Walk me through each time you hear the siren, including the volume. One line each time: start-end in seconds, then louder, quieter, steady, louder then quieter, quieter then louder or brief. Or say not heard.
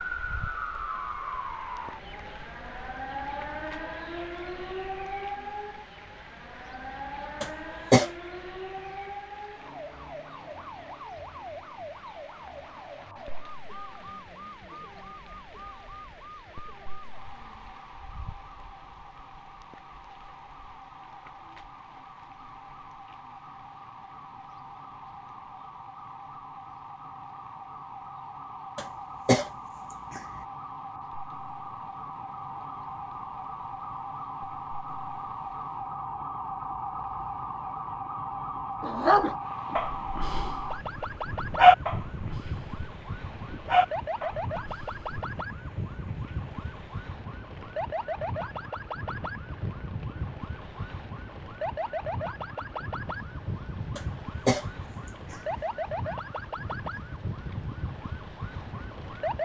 0.0-59.4 quieter then louder.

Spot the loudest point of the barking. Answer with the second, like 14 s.
42 s.